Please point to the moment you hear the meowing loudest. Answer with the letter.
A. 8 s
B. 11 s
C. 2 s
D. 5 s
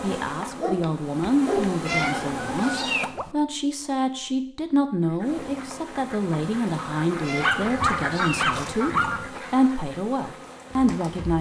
C.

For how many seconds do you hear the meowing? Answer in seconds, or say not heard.
3 s.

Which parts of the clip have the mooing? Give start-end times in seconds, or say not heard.
not heard.